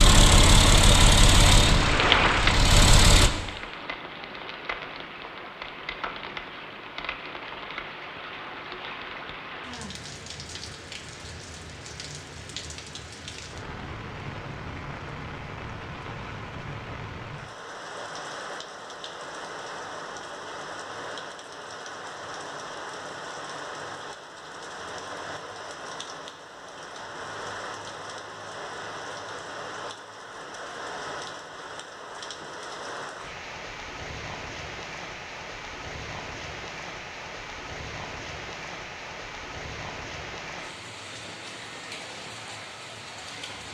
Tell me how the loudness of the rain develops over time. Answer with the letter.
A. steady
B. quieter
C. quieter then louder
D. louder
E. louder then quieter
B.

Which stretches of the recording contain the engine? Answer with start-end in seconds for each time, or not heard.
0.0-3.3.